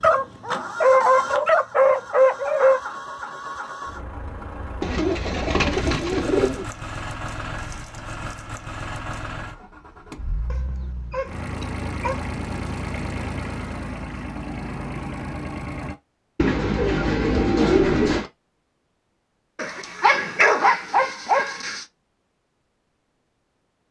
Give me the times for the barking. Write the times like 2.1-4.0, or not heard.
0.0-2.8, 10.5-12.2, 19.6-21.8.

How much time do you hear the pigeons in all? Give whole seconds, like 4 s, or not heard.
4 s.